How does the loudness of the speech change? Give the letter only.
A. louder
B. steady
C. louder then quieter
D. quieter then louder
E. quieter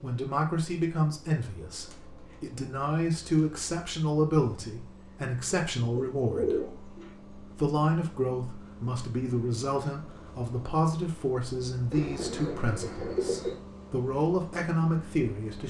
B.